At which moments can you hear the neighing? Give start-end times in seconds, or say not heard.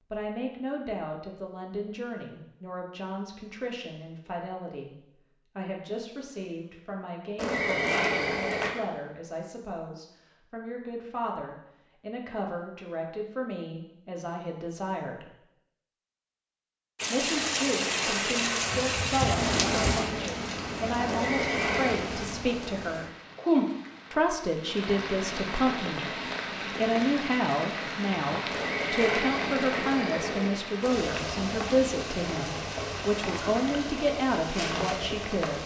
7.3-8.8, 21.1-22.1, 28.5-30.5.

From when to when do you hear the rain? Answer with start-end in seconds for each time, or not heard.
16.9-35.6.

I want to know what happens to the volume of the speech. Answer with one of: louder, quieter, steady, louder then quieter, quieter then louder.
louder.